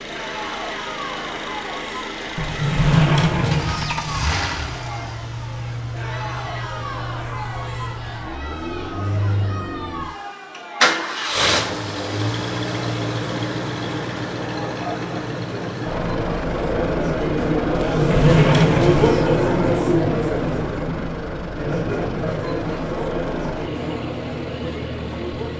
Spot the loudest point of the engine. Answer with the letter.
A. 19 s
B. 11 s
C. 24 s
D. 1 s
B.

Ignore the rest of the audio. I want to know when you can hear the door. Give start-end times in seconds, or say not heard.
2.4-4.4, 17.7-19.2.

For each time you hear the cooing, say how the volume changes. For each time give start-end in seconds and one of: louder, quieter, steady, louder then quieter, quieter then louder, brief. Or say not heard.
not heard.